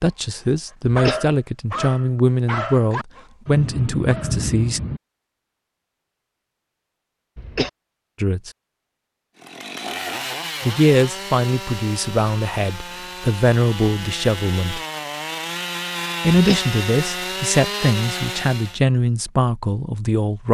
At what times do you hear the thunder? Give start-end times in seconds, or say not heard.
3.5-5.0.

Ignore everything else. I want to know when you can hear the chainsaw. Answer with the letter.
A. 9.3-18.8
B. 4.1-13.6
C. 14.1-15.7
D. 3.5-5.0
A.